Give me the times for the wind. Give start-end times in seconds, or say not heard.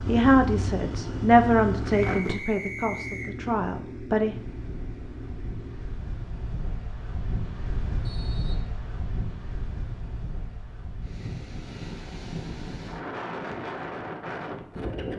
4.3-15.1.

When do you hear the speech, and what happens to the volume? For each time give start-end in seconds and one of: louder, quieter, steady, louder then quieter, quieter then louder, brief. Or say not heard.
0.1-4.3 louder then quieter.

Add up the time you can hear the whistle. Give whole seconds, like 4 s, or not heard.
2 s.